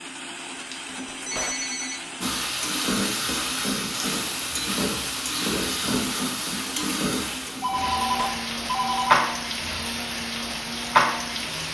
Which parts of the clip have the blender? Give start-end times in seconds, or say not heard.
0.0-11.6.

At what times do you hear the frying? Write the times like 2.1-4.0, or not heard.
2.2-11.6.